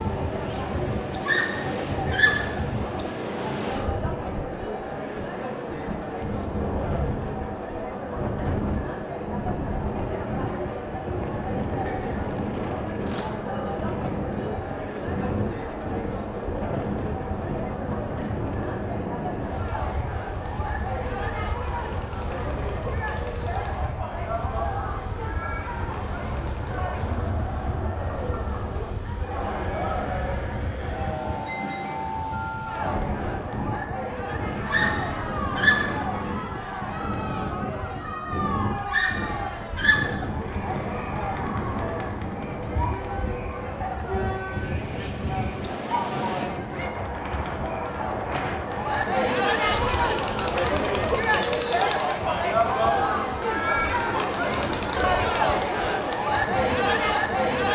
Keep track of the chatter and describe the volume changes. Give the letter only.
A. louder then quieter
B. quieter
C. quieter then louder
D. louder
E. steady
D.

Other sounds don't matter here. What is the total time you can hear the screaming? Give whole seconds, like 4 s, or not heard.
4 s.